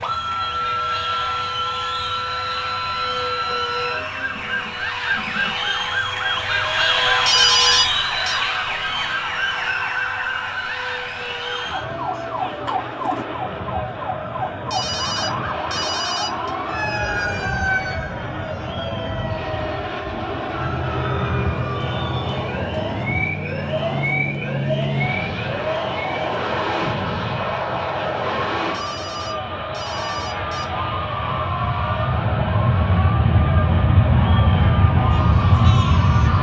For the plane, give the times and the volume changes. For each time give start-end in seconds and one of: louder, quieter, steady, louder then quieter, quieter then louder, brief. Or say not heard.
0.0-36.3 louder.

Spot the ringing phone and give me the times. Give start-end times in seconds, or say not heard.
7.2-8.4, 14.7-16.5, 28.7-30.6.